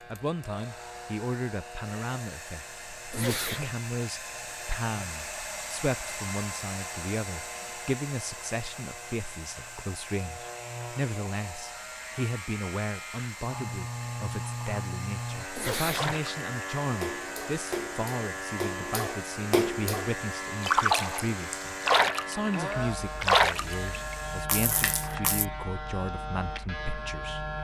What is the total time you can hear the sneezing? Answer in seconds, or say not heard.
3 s.